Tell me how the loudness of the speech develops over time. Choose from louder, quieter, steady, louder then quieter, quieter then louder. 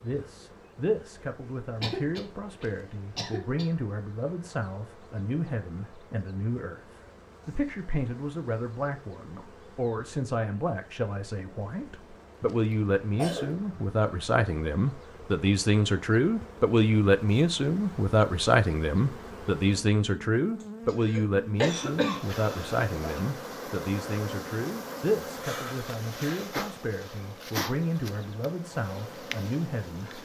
louder then quieter.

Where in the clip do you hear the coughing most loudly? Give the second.
22 s.